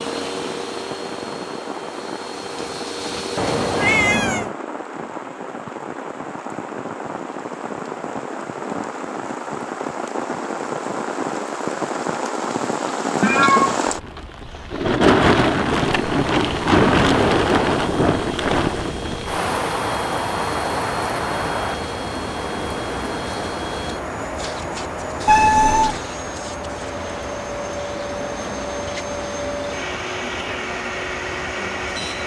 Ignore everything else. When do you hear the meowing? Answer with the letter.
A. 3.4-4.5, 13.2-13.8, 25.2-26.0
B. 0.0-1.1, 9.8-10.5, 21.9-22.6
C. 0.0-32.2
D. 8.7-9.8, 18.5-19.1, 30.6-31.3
A.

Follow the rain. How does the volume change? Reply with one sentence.
The volume of the rain goes up, then down.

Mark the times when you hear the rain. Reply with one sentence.
You can hear the rain from 0.0 to 32.2 s.